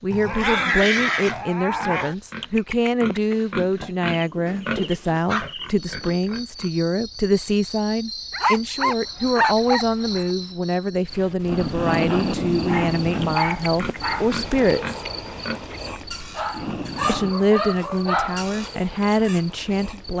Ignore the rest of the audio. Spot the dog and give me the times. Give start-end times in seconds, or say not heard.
0.1-2.1, 4.8-5.5, 8.3-10.3, 12.7-14.4, 16.4-18.4.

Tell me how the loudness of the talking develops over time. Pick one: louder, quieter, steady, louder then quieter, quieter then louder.
steady.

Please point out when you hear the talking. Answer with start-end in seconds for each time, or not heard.
0.0-15.1, 17.1-20.1.